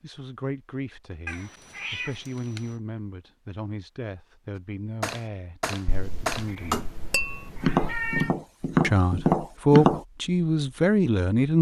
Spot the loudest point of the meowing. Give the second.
8 s.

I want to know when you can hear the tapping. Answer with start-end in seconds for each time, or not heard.
5.0-10.0.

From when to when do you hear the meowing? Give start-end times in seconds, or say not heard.
1.2-2.8, 5.8-8.3.